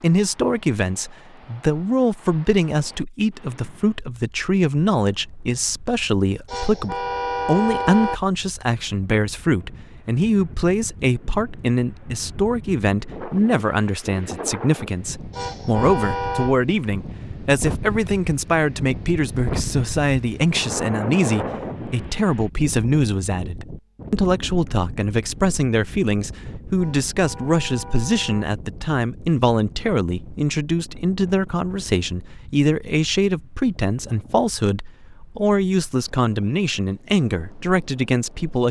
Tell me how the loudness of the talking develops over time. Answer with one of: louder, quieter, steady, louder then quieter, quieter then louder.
steady.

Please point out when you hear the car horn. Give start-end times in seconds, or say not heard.
6.5-8.2, 15.3-16.6, 26.8-28.4.